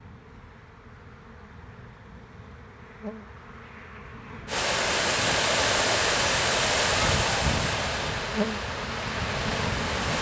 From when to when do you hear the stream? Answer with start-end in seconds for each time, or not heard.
4.5-10.1.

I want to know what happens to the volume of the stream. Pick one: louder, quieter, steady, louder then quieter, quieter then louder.
quieter.